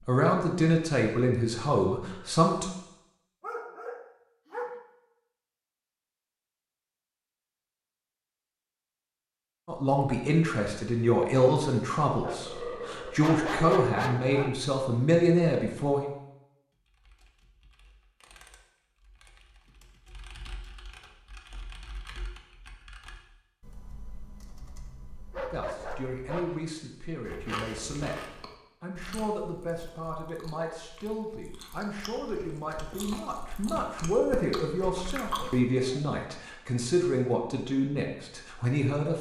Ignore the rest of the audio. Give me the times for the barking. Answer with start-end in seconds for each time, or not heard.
3.4-4.8, 12.2-14.6, 25.3-26.6, 34.3-36.0.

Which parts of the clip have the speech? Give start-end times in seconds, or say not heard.
0.1-2.7, 9.7-16.1, 25.5-39.1.